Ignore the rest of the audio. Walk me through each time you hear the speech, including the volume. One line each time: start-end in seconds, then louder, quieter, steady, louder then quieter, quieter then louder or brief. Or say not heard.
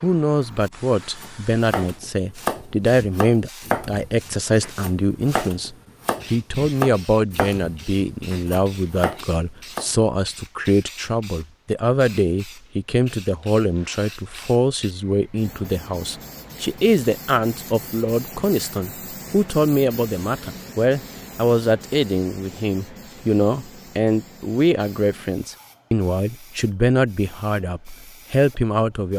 0.0-29.1 steady.